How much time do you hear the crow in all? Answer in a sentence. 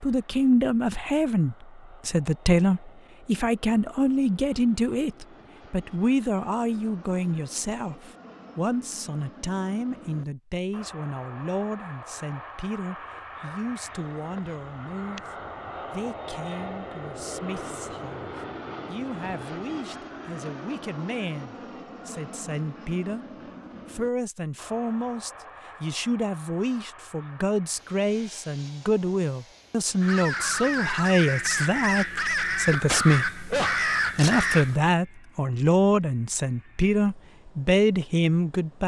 You can hear the crow for 5 seconds altogether.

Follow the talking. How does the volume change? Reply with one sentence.
The volume of the talking goes down, then up.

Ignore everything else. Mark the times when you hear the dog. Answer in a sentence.
You can't hear the dog here.